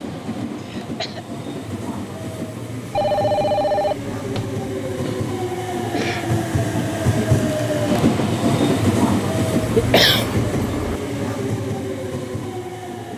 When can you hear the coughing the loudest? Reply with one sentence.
The loudest moment of the coughing is at 10 seconds.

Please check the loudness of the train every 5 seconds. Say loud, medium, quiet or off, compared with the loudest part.
medium, loud, medium.